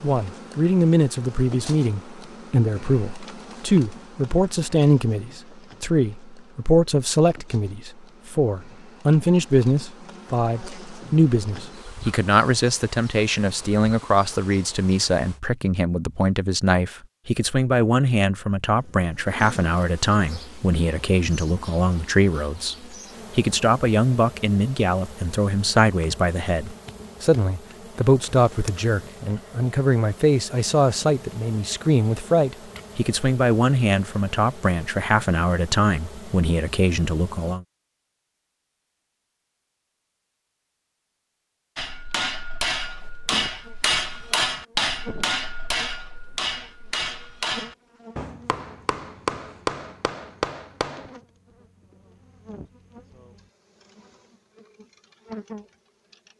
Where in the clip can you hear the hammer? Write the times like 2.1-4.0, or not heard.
41.8-51.1.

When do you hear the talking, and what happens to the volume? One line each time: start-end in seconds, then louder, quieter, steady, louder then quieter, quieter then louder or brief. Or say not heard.
0.0-37.6 steady.